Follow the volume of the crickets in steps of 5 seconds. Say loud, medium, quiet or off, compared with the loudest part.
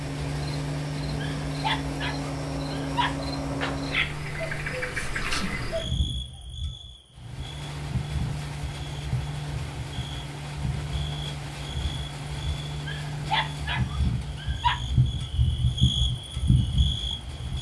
medium, medium, medium, loud.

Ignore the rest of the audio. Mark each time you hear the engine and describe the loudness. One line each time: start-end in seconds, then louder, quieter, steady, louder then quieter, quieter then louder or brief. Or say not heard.
0.0-6.2 quieter
7.1-17.5 quieter.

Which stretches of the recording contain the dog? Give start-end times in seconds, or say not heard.
1.2-3.1, 12.8-14.8.